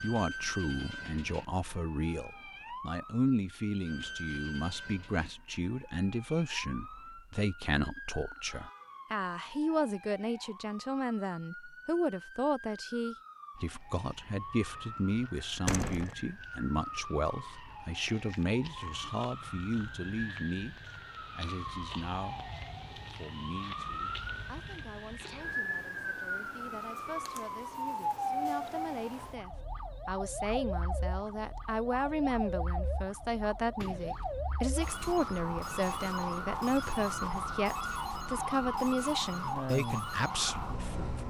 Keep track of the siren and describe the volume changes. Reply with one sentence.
The volume of the siren goes up.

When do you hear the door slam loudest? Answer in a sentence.
The loudest moment of the door slam is at 16 seconds.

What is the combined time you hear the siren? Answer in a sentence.
The siren can be heard for 41 seconds in total.